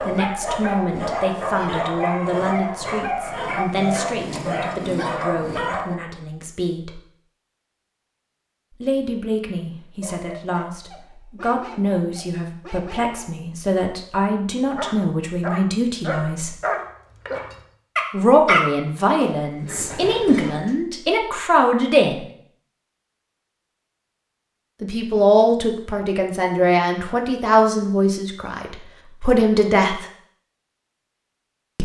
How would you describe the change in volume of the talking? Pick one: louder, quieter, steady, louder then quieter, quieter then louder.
louder.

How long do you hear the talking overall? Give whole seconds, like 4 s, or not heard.
24 s.